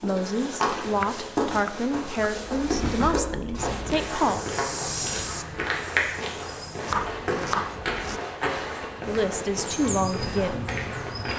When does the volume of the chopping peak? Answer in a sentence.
The volume of the chopping peaks at 7 seconds.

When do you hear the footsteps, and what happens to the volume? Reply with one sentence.
The footsteps can be heard from 0.0 to 11.3 s, at a steady volume.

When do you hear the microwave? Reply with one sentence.
You can't hear the microwave here.